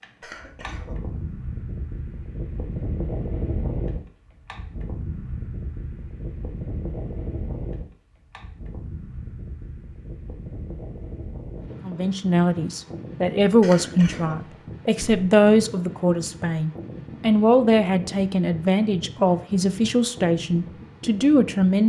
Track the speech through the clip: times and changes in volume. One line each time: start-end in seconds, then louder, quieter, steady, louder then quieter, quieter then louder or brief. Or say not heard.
11.8-21.8 steady.